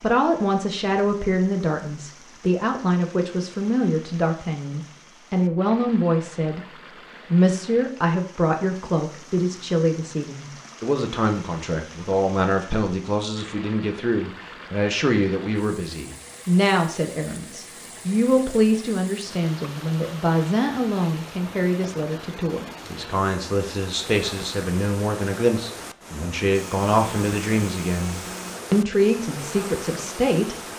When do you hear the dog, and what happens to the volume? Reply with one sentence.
You can't hear the dog here.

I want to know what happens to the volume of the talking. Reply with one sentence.
The volume of the talking stays about the same.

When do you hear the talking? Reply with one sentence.
The talking can be heard from 0.0 to 30.6 s.